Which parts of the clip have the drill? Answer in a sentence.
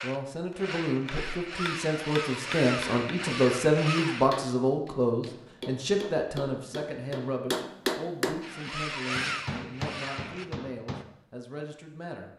You can hear the drill from 0.0 to 4.5 s and from 8.4 to 10.4 s.